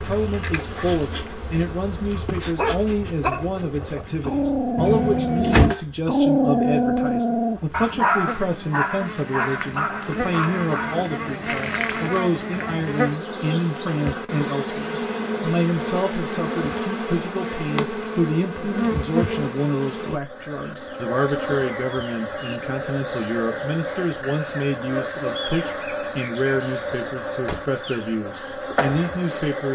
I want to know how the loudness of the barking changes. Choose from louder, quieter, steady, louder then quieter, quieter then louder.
louder then quieter.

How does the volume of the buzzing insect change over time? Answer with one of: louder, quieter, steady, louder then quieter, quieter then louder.
louder.